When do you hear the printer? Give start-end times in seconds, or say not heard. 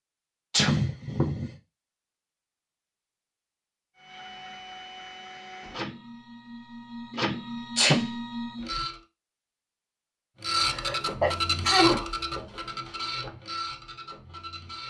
4.0-9.0, 10.4-14.8.